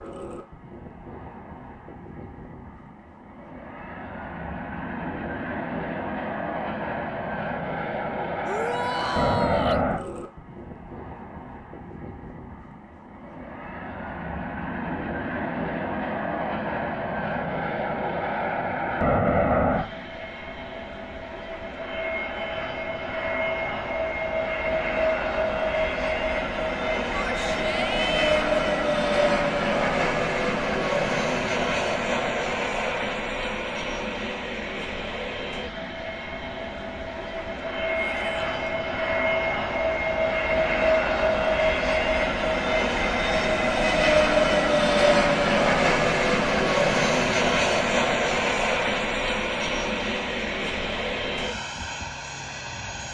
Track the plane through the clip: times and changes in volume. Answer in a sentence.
The plane can be heard from 0.0 to 53.0 s, getting louder.